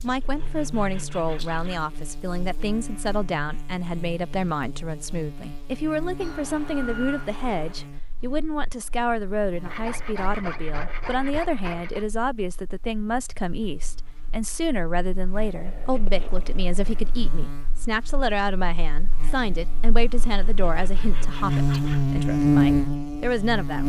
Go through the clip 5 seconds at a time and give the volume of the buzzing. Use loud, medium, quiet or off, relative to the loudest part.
quiet, quiet, quiet, quiet, loud.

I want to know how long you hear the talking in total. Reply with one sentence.
The talking can be heard for 24 seconds in total.